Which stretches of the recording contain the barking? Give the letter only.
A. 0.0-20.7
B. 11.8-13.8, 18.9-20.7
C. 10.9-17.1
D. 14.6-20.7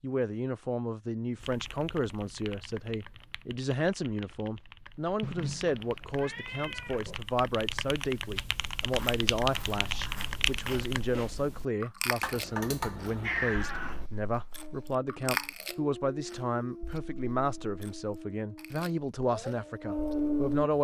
D.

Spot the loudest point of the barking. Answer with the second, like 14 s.
20 s.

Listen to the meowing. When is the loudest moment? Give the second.
13 s.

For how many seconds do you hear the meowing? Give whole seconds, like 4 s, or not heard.
4 s.